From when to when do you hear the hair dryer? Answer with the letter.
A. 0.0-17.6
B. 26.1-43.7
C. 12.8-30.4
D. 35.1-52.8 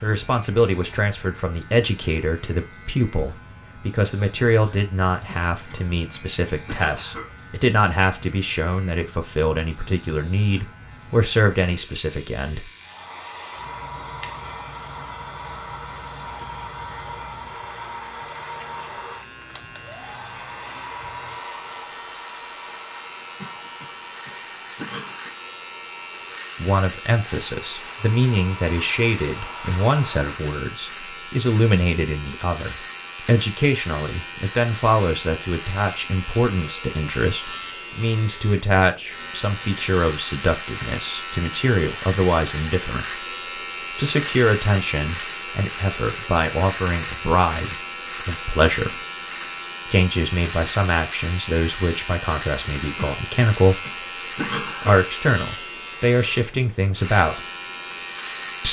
C.